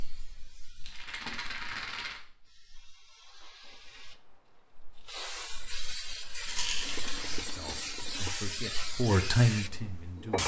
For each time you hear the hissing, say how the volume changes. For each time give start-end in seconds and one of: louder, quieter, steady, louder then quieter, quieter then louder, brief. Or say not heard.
0.0-10.4 louder.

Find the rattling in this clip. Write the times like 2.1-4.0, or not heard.
0.8-2.2, 6.5-7.2.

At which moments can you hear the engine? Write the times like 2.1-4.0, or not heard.
6.8-8.3.